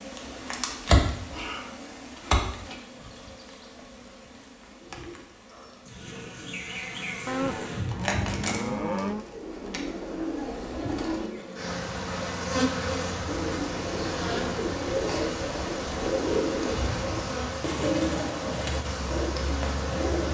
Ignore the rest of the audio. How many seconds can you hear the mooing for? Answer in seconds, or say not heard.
2 s.